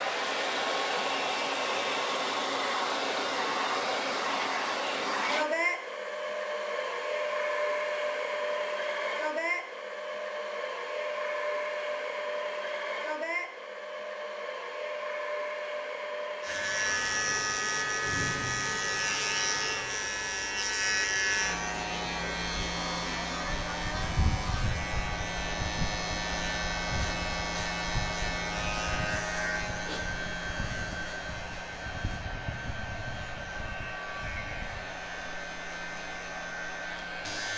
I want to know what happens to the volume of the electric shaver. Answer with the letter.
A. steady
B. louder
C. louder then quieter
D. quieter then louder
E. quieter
E.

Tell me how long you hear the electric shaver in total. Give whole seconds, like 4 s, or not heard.
21 s.